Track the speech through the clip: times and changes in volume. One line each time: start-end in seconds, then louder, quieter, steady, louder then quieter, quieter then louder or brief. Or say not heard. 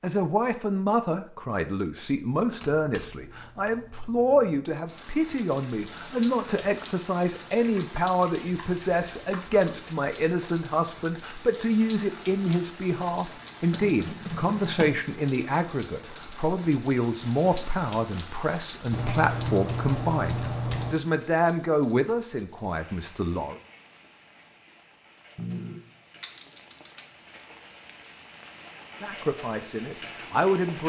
0.0-23.6 steady
29.0-30.8 brief.